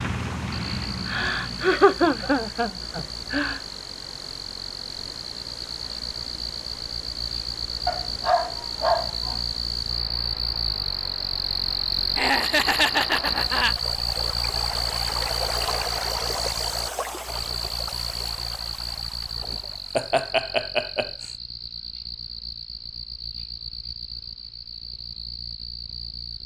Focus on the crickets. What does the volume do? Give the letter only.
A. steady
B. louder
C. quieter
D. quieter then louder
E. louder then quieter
E.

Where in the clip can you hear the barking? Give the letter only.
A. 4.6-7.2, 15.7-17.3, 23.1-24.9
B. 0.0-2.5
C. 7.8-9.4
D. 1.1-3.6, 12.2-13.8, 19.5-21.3
C.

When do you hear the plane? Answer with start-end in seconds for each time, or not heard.
0.0-2.5.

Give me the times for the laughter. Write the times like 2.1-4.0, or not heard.
1.1-3.6, 12.2-13.8, 19.5-21.3.